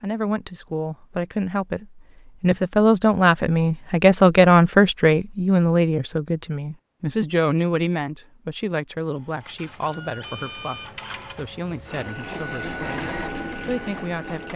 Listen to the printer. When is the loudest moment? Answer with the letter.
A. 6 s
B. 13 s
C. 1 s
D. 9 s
B.